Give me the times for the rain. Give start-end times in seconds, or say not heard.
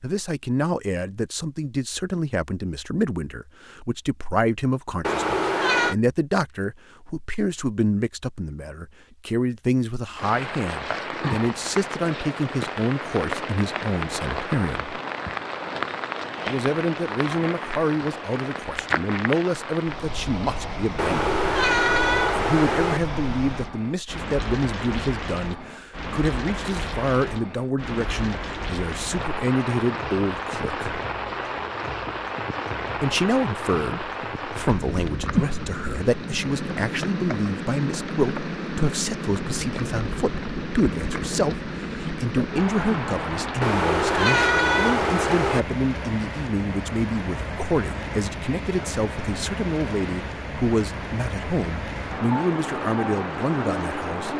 10.2-54.3.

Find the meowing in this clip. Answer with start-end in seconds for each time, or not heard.
5.0-6.0, 20.9-23.0, 43.6-45.6.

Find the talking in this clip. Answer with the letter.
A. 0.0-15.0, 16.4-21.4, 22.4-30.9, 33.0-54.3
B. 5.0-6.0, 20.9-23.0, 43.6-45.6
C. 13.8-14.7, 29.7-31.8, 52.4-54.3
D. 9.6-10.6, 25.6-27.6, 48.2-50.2
A.